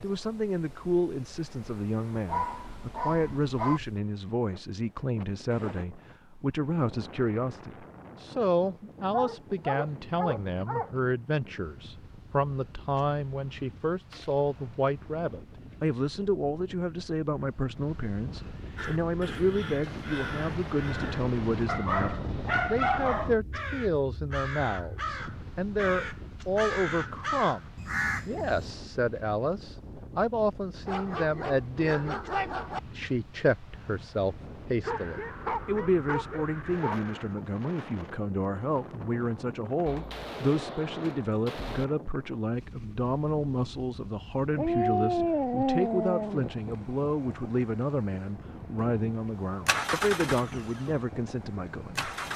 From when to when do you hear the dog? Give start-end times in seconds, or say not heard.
2.2-3.8, 9.1-10.9, 21.6-23.4, 30.9-32.8, 34.8-37.4, 44.5-46.5.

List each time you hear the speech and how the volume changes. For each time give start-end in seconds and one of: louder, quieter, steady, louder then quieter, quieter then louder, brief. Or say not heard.
0.0-32.2 steady
32.9-52.1 steady.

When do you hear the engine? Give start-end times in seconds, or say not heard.
48.8-52.3.